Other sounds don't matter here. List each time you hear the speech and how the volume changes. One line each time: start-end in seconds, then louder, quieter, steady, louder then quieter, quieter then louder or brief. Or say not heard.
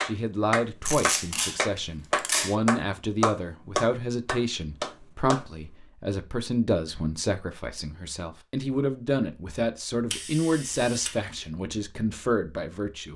0.0-13.1 steady.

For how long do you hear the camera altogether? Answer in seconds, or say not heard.
3 s.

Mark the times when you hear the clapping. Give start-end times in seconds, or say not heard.
0.0-5.5.